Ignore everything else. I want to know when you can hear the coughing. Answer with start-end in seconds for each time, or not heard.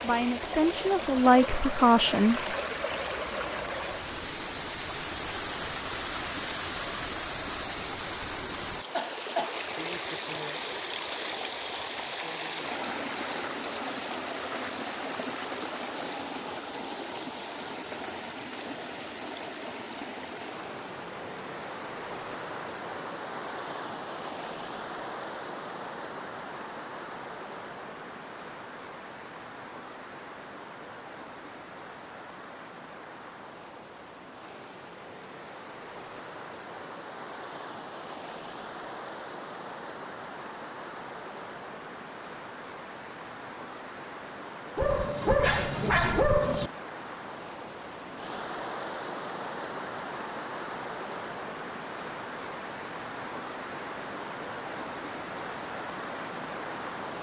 8.9-9.6.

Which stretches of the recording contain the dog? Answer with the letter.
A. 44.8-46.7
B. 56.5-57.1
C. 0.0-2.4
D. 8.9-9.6
A.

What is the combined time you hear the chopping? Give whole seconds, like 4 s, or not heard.
not heard.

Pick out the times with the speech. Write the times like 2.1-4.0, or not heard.
0.0-2.4.